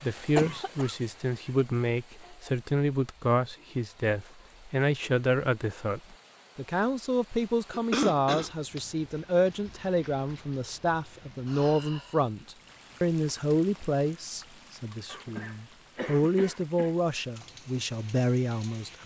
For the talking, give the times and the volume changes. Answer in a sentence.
You can hear the talking from 0.0 to 19.0 s, at a steady volume.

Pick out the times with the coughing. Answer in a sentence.
You can hear the coughing from 0.3 to 0.9 s, from 7.7 to 8.8 s and from 15.1 to 16.9 s.